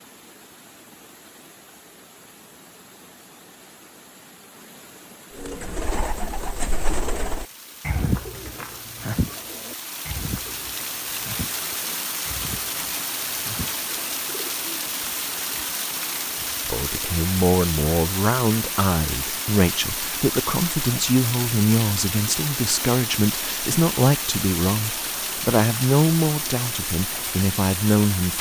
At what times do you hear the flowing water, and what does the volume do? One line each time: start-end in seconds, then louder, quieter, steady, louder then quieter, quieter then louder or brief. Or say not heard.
0.0-28.3 louder.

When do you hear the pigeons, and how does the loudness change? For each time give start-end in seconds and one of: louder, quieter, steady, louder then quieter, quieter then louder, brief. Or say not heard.
5.3-14.7 quieter.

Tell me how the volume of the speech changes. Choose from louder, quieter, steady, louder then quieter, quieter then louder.
steady.